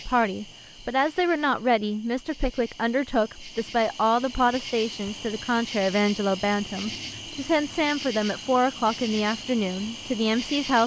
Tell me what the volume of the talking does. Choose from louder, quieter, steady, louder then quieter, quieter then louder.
steady.